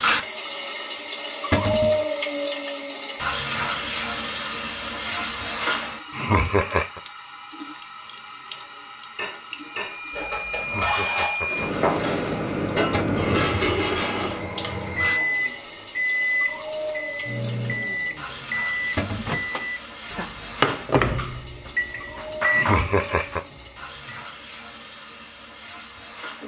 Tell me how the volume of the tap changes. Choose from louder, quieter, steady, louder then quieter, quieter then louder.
quieter.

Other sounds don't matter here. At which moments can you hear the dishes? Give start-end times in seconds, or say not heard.
8.5-14.8.